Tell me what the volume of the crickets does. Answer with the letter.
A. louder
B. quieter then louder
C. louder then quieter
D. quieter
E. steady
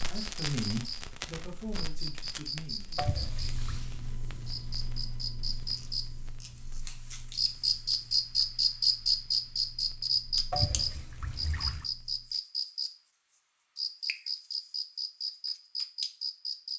C.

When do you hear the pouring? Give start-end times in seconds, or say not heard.
3.0-3.9, 10.5-11.8.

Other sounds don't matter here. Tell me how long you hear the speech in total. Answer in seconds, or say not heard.
3 s.